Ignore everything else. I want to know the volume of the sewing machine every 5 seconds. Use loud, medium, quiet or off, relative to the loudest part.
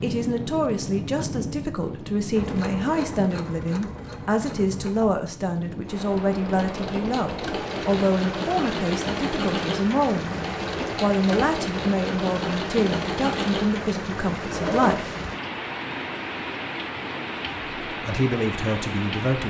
medium, loud, loud, off.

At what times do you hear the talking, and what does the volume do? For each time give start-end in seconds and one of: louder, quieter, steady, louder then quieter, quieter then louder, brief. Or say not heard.
0.0-15.2 steady
17.9-19.4 brief.